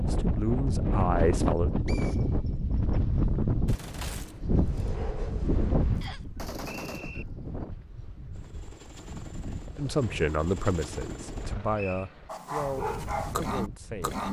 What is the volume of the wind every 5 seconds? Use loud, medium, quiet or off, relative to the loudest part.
loud, medium, quiet.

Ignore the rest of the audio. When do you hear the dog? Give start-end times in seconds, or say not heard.
12.2-14.2.